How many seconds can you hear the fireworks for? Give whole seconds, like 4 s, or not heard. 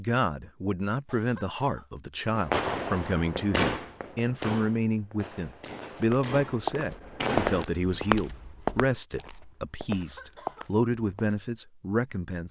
5 s.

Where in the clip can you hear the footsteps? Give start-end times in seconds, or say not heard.
6.0-11.3.